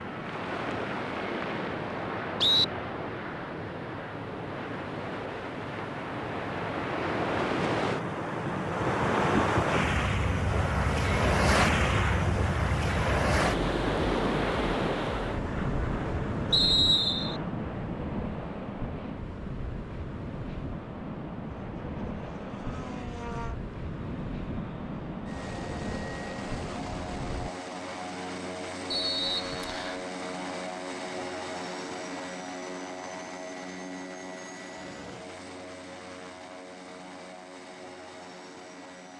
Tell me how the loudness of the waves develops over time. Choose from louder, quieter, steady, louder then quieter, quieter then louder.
louder then quieter.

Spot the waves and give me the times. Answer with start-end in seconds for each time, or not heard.
0.0-27.5.